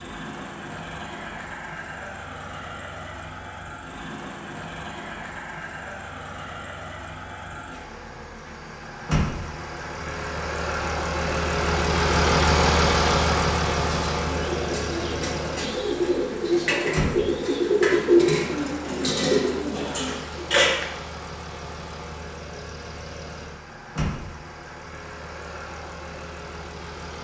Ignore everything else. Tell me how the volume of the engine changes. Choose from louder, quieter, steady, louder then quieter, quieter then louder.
louder then quieter.